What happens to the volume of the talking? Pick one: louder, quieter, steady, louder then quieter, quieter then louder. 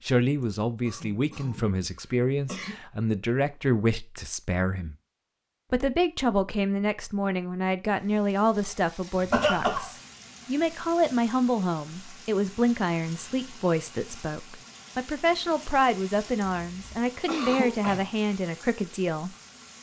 steady.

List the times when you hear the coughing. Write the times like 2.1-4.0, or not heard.
0.4-2.8, 9.3-9.9, 16.5-18.1.